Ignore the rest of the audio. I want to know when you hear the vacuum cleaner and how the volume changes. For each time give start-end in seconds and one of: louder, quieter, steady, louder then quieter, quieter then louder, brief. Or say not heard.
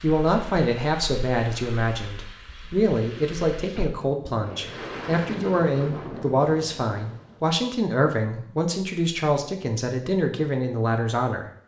not heard.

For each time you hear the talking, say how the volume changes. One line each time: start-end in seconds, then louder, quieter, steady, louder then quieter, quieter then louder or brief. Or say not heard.
0.0-11.4 steady.